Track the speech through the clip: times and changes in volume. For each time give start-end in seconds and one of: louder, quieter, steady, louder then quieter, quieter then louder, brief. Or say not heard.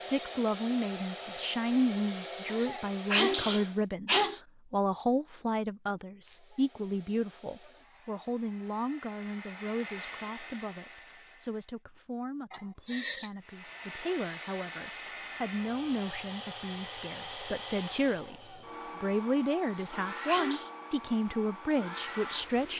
0.0-22.7 quieter then louder.